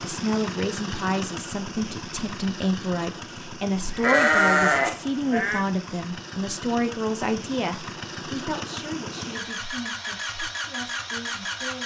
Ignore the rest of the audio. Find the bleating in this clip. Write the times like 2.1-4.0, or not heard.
3.9-5.7.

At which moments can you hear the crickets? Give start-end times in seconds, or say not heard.
not heard.